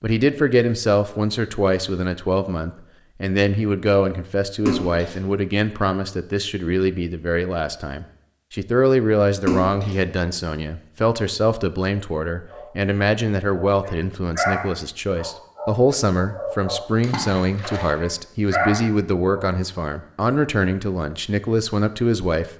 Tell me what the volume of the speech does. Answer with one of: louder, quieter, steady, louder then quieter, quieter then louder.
steady.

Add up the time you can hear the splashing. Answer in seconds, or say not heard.
2 s.